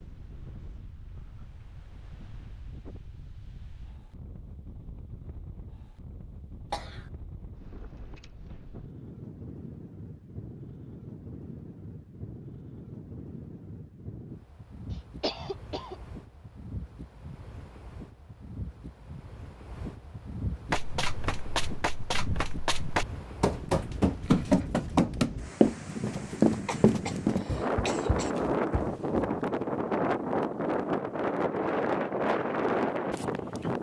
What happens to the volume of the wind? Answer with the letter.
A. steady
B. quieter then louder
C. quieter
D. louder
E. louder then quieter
D.